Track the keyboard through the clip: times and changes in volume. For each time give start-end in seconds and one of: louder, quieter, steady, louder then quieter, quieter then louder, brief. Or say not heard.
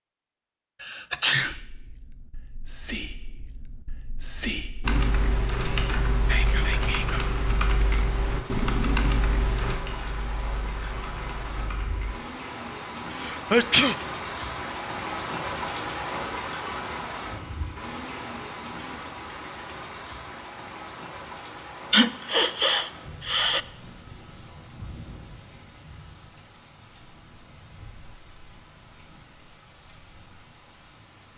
4.8-12.2 quieter.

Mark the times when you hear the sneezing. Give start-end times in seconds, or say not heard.
0.8-1.6, 13.2-13.9, 21.9-23.6.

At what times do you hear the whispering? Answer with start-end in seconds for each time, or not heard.
1.4-8.1.